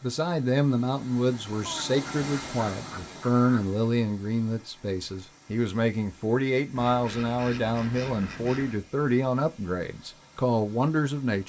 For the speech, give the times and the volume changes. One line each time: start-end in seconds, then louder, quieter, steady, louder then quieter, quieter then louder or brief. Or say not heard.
0.0-11.4 steady.